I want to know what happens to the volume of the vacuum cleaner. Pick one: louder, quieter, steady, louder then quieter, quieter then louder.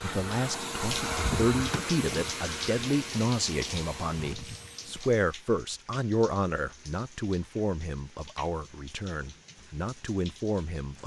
quieter.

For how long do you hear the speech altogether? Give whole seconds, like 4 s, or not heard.
11 s.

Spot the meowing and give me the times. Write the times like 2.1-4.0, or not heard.
not heard.